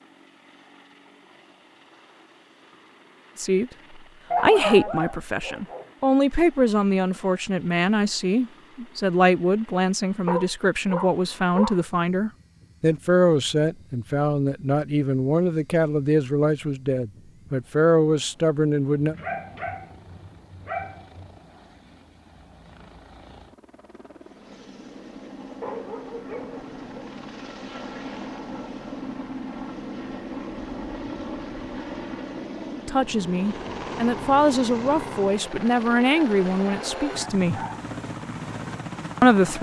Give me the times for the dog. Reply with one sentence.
You can hear the dog from 4.3 to 5.8 s, from 10.2 to 11.8 s, from 18.9 to 21.4 s, from 25.6 to 27.1 s and from 36.1 to 37.8 s.